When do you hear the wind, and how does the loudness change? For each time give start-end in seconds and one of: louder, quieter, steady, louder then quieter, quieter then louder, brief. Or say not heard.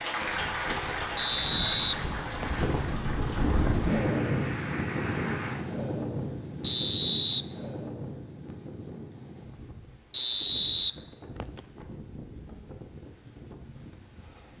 0.1-14.5 louder then quieter.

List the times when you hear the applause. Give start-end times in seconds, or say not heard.
0.0-5.6.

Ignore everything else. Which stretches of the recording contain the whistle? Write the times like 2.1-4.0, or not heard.
1.1-2.6, 6.6-7.5, 10.1-11.6.